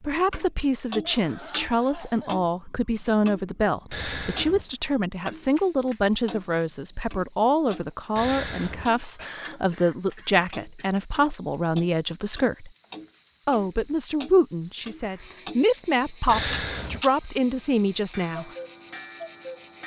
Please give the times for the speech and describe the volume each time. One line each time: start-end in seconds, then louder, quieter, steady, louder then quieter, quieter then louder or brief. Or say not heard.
0.0-12.7 steady
13.4-18.5 quieter then louder.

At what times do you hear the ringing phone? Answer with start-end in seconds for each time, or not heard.
3.9-5.0, 8.2-9.4, 16.2-18.1.